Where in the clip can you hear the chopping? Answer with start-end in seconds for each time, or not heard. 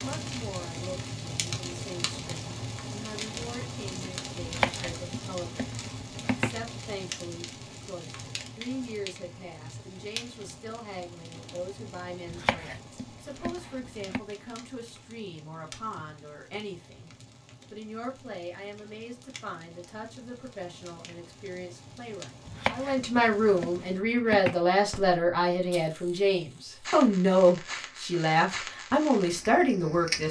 4.4-6.8, 12.2-14.2, 22.4-24.6.